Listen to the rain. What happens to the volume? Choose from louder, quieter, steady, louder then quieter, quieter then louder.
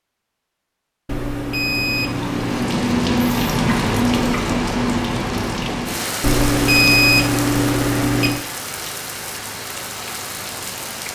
quieter.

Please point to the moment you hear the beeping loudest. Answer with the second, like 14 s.
7 s.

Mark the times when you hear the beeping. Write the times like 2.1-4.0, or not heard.
1.1-2.9, 6.2-8.4.